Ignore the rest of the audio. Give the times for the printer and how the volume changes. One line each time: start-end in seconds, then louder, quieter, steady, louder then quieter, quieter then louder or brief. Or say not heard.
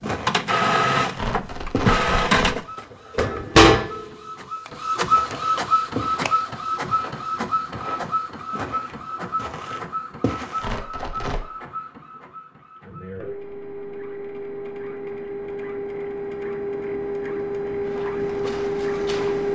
0.0-19.5 quieter then louder.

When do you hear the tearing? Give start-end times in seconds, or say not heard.
1.1-2.6, 10.6-11.4.